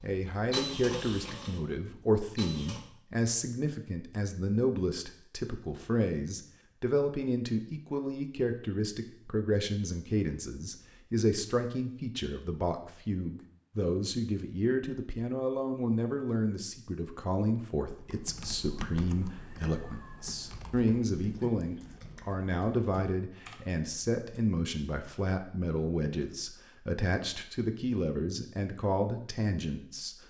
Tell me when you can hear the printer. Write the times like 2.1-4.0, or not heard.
0.0-2.8.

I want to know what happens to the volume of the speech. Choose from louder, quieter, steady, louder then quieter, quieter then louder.
steady.